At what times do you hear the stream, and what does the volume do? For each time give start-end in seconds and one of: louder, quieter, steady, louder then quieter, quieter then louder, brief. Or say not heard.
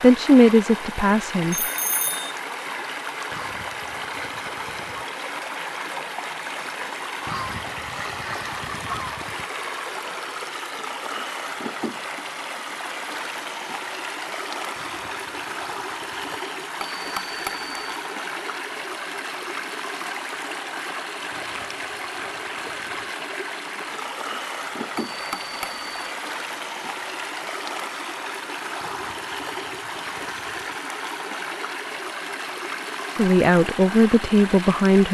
0.0-35.0 steady.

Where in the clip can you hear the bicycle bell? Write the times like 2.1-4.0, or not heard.
1.5-2.4, 16.8-17.9, 24.9-26.1.